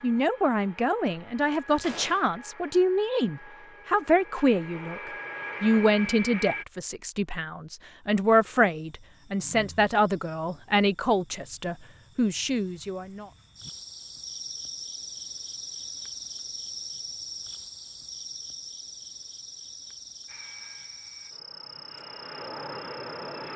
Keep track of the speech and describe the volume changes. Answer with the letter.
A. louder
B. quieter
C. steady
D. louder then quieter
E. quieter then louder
C.